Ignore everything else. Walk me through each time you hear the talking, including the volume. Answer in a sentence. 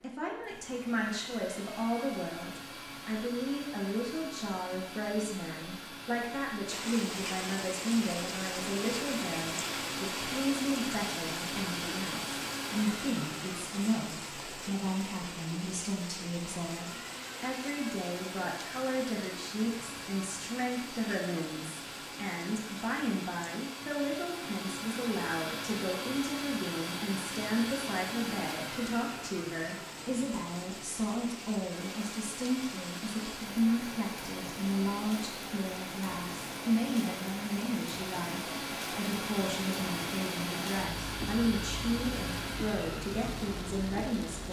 You can hear the talking from 0.0 to 44.4 s, at a steady volume.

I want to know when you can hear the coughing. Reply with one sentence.
You can't hear the coughing here.